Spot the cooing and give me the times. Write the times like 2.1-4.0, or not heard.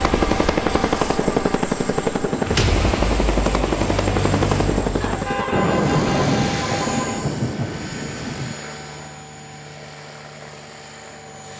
not heard.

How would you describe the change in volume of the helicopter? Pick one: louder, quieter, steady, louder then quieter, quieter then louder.
quieter.